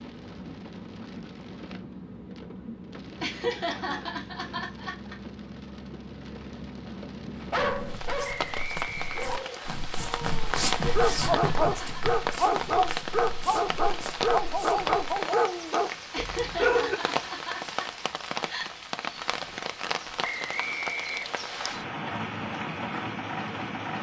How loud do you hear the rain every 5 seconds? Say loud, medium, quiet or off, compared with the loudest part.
medium, medium, loud, loud, loud.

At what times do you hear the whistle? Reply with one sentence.
The whistle can be heard from 8.2 to 9.8 s and from 20.2 to 21.8 s.